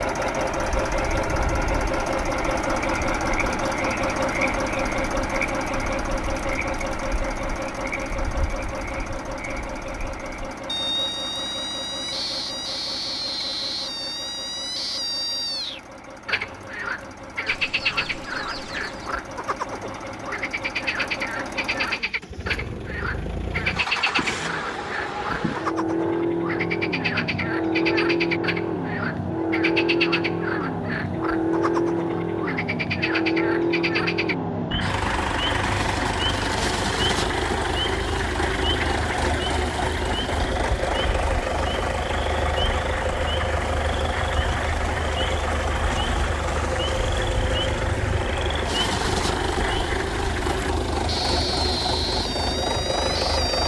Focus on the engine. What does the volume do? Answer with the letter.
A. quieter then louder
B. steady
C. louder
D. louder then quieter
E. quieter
A.